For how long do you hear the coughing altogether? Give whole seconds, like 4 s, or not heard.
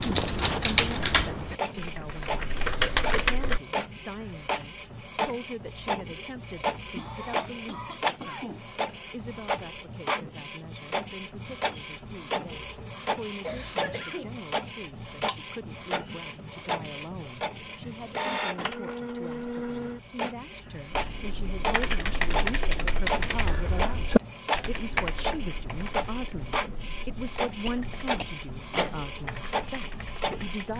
4 s.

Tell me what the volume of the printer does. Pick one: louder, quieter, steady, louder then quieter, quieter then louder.
steady.